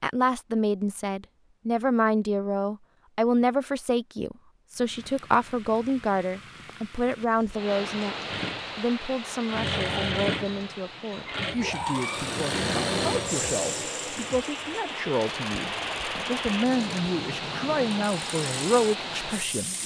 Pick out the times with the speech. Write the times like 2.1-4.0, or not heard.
0.0-19.8.